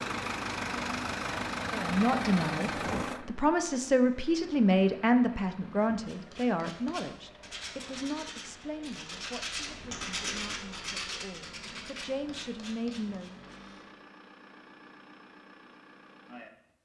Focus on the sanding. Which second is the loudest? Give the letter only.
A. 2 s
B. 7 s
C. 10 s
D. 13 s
C.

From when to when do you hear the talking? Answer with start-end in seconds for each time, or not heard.
1.7-13.3.